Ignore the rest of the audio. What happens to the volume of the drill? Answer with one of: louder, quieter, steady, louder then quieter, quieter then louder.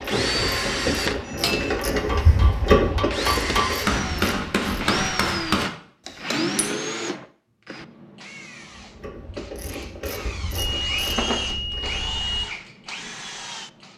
quieter then louder.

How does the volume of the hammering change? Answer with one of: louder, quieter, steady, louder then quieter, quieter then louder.
louder.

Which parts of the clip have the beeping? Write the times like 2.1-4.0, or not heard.
10.6-12.5.